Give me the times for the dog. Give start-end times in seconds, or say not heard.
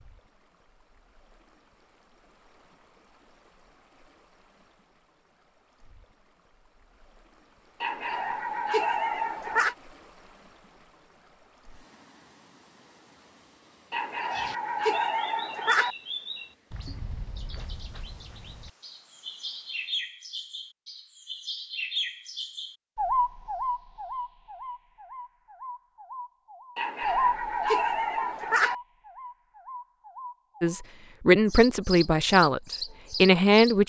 7.8-9.8, 13.9-15.9, 26.8-28.8.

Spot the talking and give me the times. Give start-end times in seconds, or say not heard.
30.6-33.8.